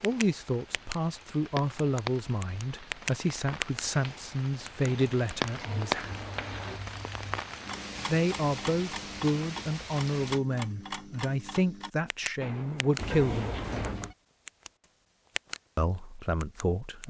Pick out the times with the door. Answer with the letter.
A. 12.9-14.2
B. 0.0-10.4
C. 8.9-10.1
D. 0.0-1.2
A.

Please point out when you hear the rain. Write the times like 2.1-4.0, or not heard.
0.0-10.4.